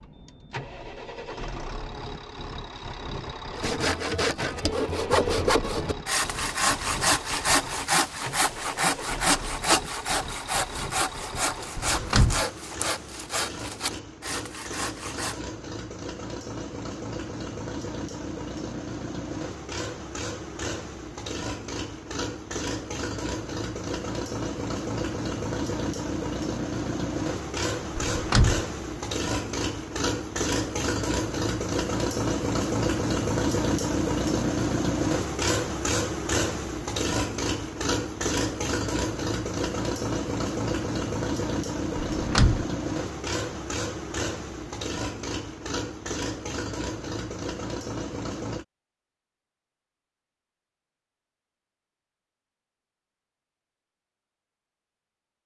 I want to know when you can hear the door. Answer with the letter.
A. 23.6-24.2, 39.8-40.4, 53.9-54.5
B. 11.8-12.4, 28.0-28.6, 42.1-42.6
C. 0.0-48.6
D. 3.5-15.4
B.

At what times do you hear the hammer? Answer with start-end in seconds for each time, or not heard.
not heard.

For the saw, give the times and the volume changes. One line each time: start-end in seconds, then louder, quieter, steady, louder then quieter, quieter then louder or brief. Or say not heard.
3.5-15.4 quieter.